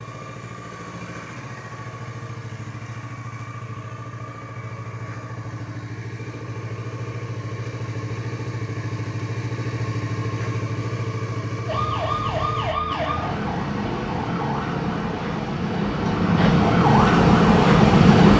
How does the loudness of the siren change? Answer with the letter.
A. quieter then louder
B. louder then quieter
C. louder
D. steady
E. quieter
C.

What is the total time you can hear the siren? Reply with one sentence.
The siren can be heard for 7 seconds in total.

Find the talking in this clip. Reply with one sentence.
You can't hear the talking here.